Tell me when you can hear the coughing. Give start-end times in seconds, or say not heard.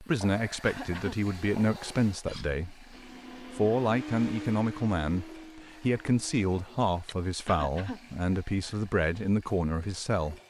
0.6-1.1, 7.5-8.0.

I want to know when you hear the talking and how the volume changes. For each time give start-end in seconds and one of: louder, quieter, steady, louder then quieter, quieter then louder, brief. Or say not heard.
0.0-10.3 steady.